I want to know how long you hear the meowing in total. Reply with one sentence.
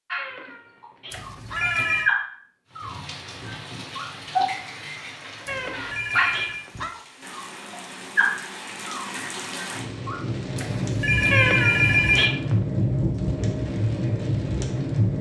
You can hear the meowing for 5 seconds altogether.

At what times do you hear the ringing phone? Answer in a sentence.
You can hear the ringing phone from 1.1 to 2.1 s, from 5.5 to 6.7 s and from 10.6 to 12.3 s.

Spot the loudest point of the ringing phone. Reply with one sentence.
The loudest moment of the ringing phone is at 12 seconds.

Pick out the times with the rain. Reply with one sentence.
The rain can be heard from 2.7 to 15.1 s.